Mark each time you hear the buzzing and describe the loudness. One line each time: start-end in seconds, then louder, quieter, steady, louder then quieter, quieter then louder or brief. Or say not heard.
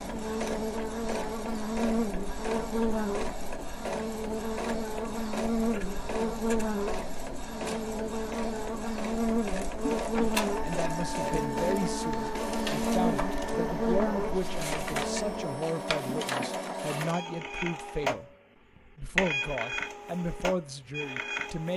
0.0-15.5 steady.